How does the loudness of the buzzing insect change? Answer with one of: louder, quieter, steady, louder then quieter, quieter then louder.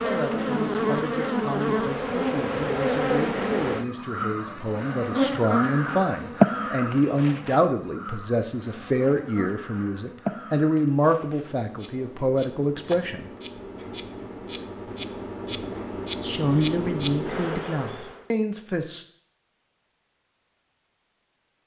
quieter then louder.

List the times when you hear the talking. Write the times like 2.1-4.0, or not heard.
0.0-13.3, 16.2-19.1.